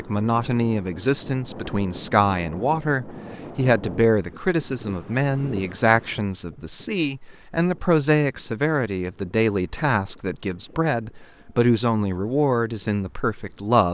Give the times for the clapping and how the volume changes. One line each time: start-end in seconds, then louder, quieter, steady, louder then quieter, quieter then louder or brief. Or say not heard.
not heard.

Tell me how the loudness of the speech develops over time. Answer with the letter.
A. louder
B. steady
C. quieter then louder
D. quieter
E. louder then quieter
B.